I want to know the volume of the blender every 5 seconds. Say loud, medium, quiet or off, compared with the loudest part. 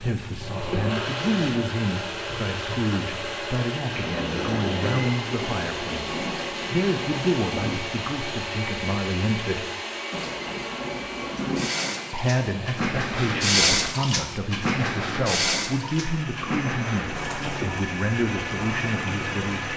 loud, loud, medium, loud.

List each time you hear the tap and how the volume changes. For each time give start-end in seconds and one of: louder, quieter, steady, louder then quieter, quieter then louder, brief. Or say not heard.
0.0-7.8 quieter then louder
10.1-19.7 louder then quieter.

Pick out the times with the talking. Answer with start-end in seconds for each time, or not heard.
0.0-9.7, 12.1-19.7.